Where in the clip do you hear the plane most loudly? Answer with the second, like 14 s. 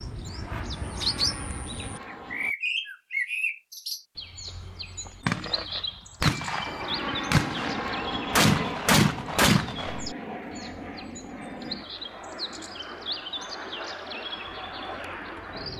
8 s.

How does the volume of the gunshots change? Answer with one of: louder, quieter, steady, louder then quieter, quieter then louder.
quieter then louder.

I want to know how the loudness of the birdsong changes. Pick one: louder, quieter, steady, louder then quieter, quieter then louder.
quieter.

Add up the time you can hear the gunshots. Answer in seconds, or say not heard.
5 s.